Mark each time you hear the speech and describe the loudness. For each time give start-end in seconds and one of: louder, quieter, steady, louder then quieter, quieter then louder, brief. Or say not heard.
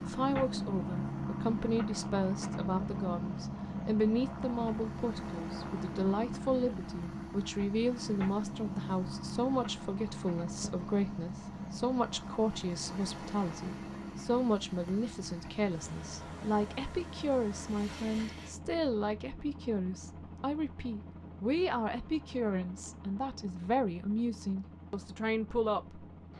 0.1-26.1 steady.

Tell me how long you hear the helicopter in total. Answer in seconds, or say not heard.
26 s.